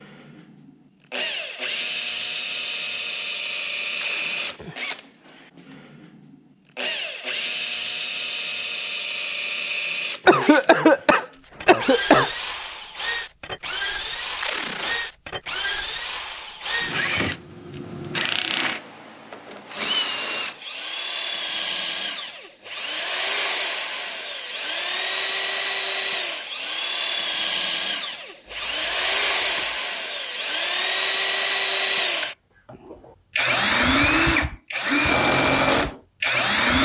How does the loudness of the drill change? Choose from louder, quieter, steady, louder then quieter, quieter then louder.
louder.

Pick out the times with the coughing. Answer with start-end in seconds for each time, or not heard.
10.2-12.3.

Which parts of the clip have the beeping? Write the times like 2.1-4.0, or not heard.
not heard.